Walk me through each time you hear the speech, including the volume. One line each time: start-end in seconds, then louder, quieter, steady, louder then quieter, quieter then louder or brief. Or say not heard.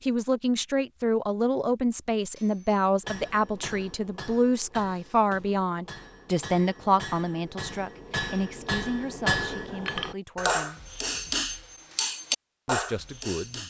0.0-10.8 quieter
12.7-13.6 brief.